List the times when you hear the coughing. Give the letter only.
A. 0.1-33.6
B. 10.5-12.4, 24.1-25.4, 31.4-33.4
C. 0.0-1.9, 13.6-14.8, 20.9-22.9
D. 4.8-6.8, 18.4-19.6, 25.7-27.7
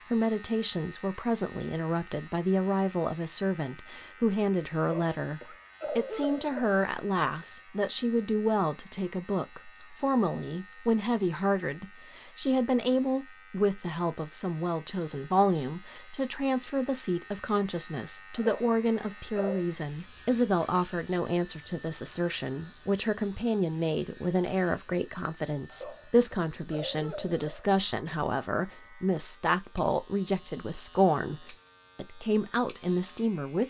D.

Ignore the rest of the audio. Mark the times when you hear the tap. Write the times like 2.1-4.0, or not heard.
not heard.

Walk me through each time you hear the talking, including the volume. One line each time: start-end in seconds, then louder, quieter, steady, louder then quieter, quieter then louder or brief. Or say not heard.
0.1-33.6 steady.